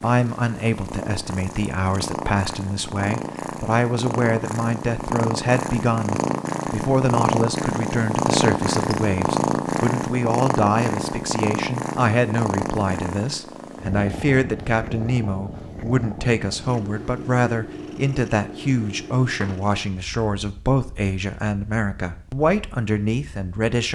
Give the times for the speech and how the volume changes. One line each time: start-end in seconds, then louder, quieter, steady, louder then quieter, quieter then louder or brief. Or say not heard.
0.0-23.9 steady.